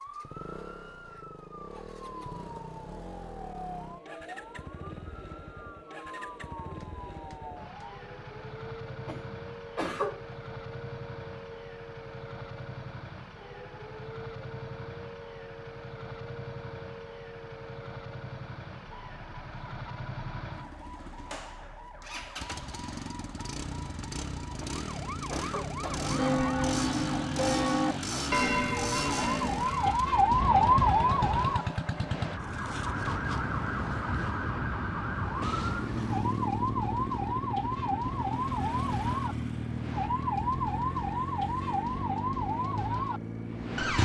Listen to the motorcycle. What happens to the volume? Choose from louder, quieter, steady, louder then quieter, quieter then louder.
louder.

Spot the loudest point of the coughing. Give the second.
10 s.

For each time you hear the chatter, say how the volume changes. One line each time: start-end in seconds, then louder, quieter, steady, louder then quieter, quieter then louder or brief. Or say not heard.
not heard.